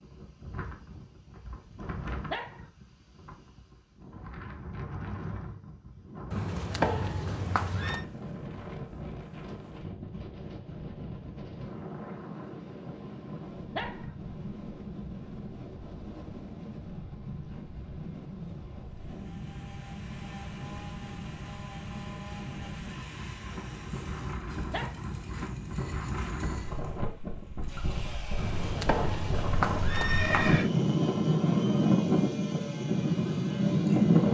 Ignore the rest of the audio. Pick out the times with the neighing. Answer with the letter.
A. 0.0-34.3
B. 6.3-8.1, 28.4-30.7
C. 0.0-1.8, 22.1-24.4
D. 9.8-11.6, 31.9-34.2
B.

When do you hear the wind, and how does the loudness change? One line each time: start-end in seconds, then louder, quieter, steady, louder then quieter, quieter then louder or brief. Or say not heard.
0.0-34.3 louder.